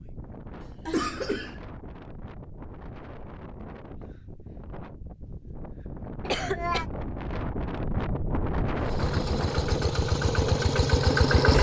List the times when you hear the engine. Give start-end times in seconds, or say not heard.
8.8-11.5.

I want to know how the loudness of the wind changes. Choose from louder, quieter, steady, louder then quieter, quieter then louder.
louder.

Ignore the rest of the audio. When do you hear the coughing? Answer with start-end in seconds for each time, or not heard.
0.6-1.6, 6.2-6.8.